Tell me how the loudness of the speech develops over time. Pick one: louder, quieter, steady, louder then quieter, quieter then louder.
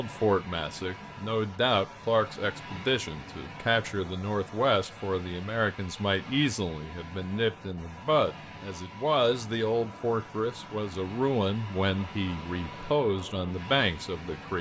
steady.